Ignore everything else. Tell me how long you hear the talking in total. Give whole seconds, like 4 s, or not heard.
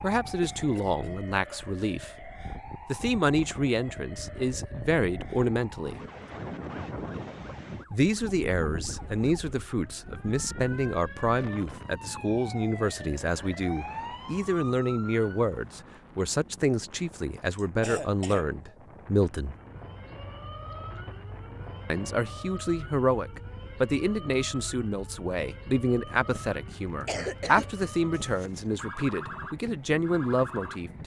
27 s.